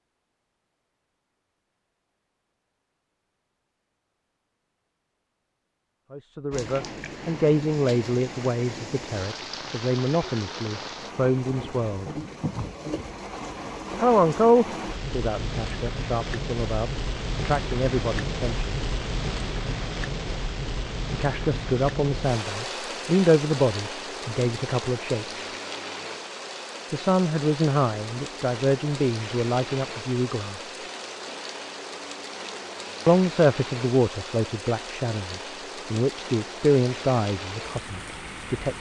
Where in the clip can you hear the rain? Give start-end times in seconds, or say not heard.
6.5-38.7.